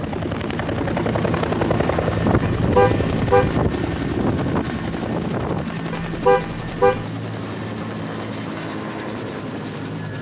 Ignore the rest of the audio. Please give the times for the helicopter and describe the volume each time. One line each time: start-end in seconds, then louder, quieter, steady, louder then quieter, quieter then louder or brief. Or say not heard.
0.0-10.1 quieter.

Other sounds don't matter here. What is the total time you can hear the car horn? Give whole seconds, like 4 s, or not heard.
2 s.